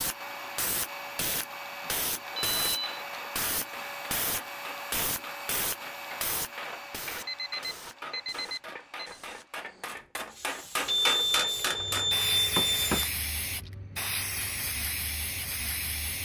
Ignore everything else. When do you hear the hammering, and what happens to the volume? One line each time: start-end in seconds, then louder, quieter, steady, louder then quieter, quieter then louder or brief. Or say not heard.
2.2-13.1 louder.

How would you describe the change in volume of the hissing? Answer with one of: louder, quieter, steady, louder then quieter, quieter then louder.
quieter then louder.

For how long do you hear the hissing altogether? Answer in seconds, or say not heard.
16 s.